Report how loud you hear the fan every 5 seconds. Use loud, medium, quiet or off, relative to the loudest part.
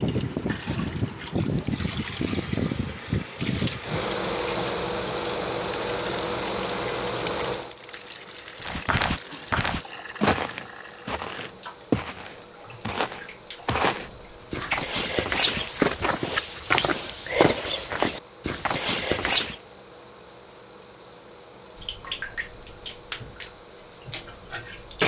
loud, loud, quiet, quiet, quiet.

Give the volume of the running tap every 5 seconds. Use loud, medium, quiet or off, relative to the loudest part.
loud, loud, loud, off, loud.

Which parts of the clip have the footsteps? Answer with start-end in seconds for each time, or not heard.
8.6-19.6.